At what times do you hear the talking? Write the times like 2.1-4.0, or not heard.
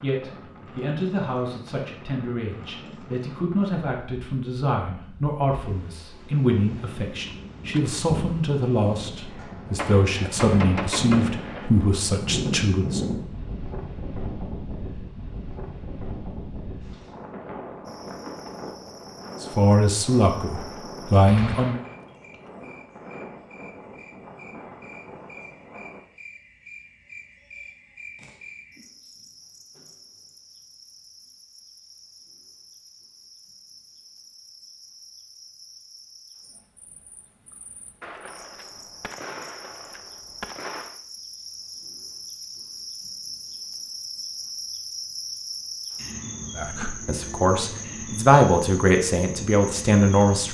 0.0-13.0, 19.4-21.8, 46.5-50.5.